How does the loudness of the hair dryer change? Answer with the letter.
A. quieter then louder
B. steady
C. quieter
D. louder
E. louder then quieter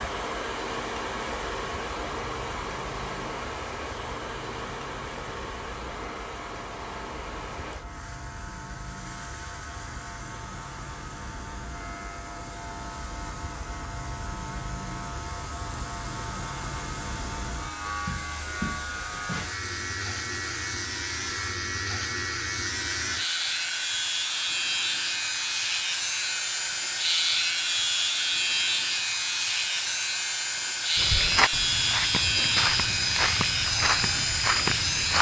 A.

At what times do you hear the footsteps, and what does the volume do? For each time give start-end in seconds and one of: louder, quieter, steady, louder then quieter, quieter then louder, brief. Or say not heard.
30.9-35.1 steady.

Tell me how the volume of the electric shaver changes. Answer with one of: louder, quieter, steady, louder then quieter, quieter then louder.
louder.